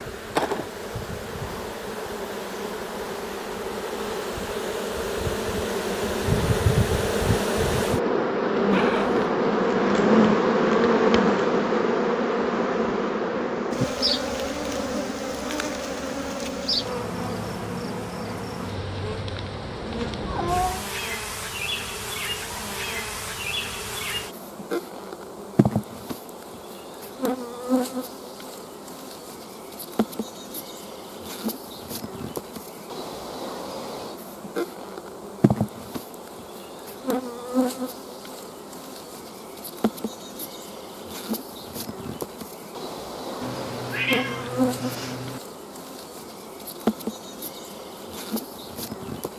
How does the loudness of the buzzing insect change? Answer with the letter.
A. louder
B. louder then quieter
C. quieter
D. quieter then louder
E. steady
C.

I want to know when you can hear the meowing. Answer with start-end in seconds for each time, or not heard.
8.7-9.2, 20.2-20.9, 43.4-45.4.